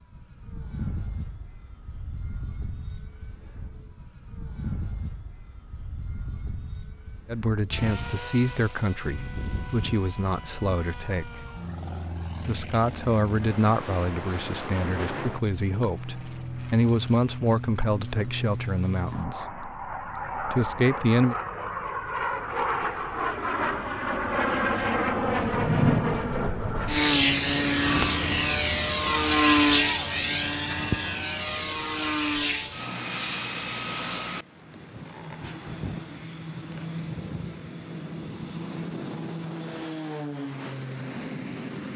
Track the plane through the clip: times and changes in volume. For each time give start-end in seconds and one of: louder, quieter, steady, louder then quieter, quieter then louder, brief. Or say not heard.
0.0-41.9 louder then quieter.